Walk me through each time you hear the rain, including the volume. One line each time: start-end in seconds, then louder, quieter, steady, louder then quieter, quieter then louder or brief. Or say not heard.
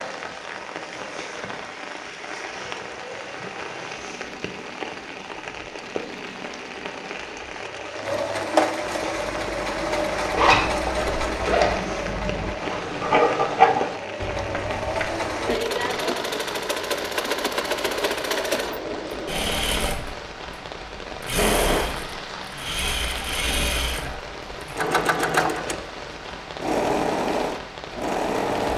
0.0-28.7 steady.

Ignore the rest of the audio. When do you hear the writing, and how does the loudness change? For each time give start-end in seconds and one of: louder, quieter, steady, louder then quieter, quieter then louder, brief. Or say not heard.
8.9-15.8 louder then quieter.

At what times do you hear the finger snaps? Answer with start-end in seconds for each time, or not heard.
not heard.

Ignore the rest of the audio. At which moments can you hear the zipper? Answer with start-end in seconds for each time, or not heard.
10.3-11.8.